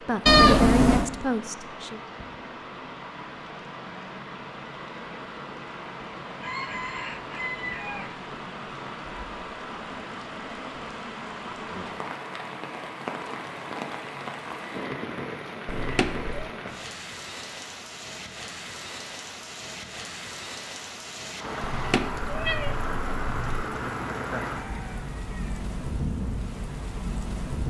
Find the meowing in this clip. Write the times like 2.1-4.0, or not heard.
0.2-1.1, 15.7-16.5, 21.7-23.6.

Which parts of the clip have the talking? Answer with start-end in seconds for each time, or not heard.
0.0-2.0.